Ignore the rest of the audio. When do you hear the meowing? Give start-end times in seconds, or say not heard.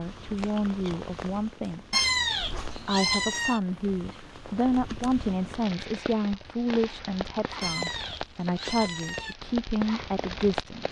1.9-3.6, 7.6-9.3.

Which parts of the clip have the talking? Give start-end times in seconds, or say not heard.
0.0-1.9, 2.8-10.8.